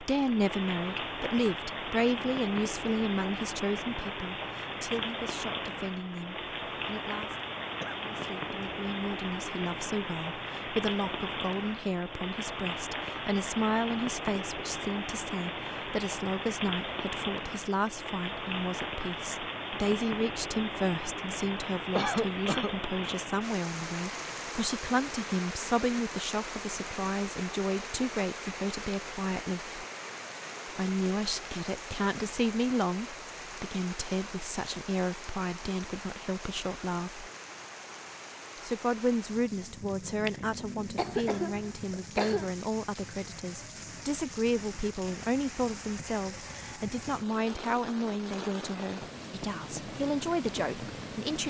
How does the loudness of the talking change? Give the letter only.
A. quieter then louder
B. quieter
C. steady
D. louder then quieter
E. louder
C.